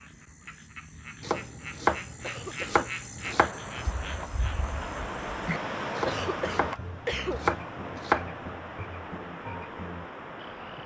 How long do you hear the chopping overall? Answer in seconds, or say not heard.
5 s.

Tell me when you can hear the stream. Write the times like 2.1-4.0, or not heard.
3.2-10.8.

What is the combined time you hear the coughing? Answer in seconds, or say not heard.
2 s.